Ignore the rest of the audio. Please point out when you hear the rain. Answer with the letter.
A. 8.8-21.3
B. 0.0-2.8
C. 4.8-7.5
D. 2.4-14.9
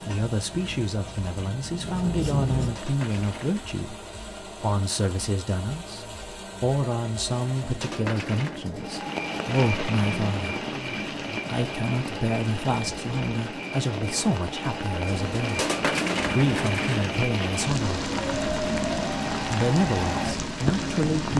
A.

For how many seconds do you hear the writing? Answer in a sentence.
The writing can be heard for 3 seconds in total.